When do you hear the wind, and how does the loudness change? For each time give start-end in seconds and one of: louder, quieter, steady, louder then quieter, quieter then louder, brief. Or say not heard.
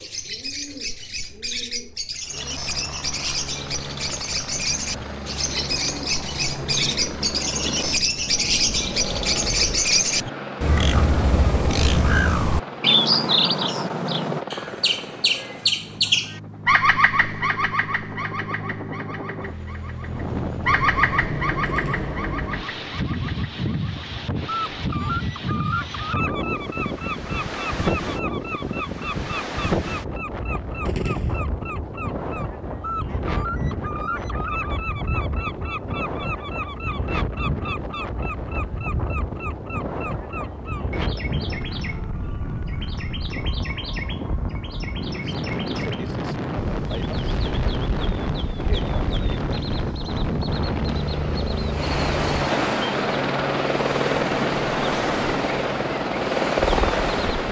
20.0-57.4 steady.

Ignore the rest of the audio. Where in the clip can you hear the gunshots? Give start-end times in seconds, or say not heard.
21.6-22.1, 30.9-31.4.